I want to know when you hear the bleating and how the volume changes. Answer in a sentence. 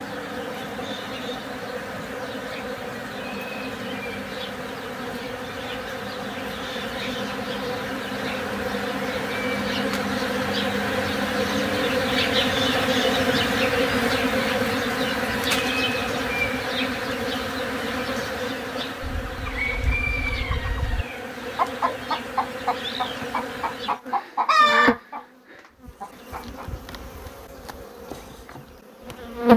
The bleating can't be heard in this clip.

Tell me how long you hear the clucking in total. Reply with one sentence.
You can hear the clucking for 7 seconds altogether.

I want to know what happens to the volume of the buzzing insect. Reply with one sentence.
The loudness of the buzzing insect goes up, then down.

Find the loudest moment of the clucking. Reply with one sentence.
The loudest moment of the clucking is at 25 seconds.